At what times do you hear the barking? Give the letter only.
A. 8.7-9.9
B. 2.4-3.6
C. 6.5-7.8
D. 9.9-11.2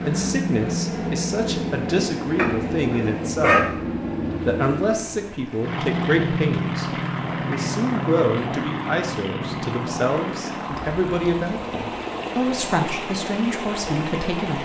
B.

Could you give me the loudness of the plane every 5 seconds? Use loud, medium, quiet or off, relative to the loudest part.
loud, loud, medium.